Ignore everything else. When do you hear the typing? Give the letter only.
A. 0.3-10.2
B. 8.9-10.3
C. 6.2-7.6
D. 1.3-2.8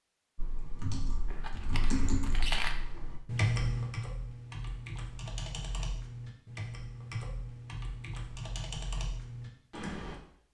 A.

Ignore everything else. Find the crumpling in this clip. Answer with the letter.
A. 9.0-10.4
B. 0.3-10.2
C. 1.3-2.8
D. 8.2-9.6
C.